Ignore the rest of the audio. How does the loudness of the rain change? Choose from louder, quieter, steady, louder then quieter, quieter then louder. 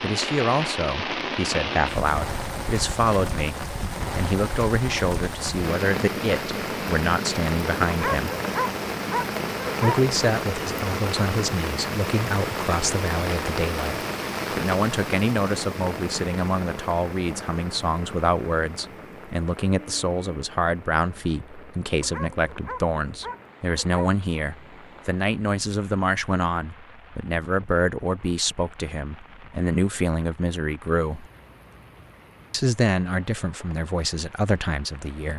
quieter.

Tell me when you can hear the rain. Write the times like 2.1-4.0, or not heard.
0.0-35.3.